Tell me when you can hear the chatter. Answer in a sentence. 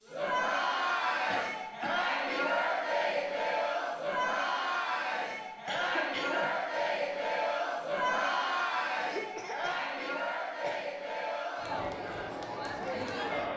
You can hear the chatter from 0.0 to 13.5 s.